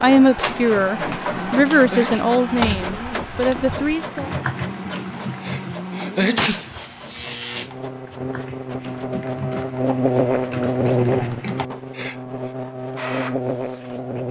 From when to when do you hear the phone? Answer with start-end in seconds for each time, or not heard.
not heard.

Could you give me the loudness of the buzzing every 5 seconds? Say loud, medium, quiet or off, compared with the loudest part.
medium, medium, loud.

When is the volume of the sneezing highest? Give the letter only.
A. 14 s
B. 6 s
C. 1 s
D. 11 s
B.